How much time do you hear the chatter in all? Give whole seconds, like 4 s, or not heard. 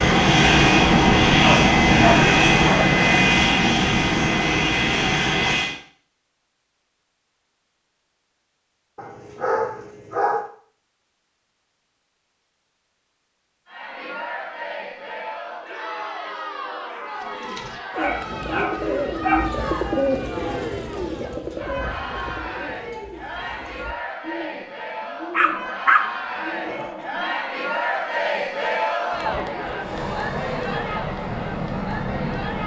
19 s.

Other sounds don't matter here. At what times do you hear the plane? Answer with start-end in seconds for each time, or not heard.
0.0-5.8, 29.8-32.6.